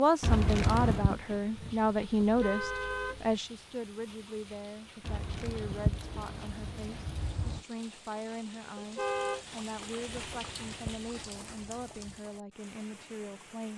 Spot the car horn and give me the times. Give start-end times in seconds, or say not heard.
1.1-3.4, 8.8-9.4.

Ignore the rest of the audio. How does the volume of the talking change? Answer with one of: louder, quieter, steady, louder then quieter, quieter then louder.
quieter.